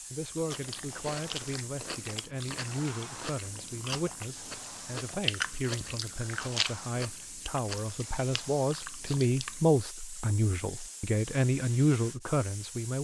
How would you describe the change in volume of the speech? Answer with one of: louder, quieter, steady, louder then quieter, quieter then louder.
louder.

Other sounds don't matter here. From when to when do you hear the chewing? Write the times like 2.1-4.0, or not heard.
0.3-9.8.